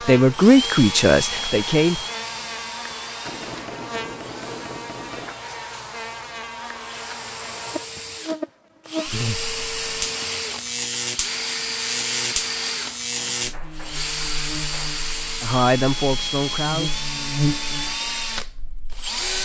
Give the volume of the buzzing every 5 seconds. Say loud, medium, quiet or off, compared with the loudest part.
medium, loud, loud, loud.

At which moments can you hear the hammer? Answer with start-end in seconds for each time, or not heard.
3.2-5.4, 13.2-15.0.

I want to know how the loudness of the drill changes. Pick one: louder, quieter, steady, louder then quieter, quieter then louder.
quieter then louder.